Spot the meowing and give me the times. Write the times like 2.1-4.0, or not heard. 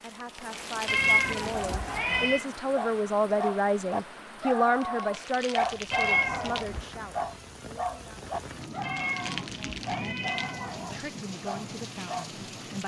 0.8-2.5, 5.9-6.8, 8.8-11.1.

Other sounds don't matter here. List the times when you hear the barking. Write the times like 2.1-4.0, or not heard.
1.5-12.3.